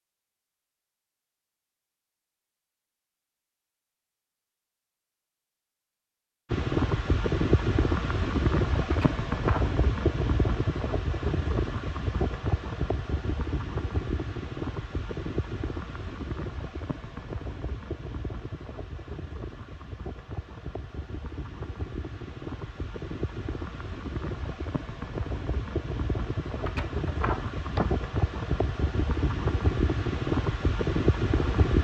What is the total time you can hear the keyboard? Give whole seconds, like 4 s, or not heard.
not heard.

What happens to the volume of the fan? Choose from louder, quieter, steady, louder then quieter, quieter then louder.
quieter then louder.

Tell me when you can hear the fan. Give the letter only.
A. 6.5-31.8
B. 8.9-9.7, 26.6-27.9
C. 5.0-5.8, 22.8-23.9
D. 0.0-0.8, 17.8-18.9
A.